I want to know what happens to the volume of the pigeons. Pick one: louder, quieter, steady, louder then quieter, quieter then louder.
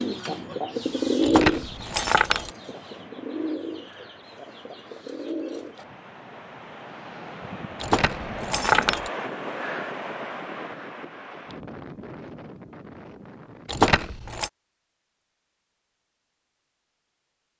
quieter.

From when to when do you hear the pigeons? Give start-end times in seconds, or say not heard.
0.0-5.8.